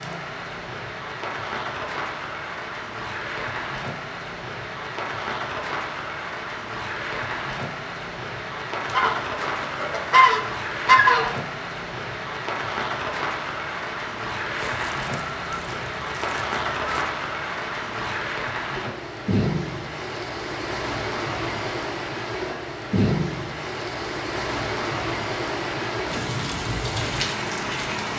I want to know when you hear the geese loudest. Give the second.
11 s.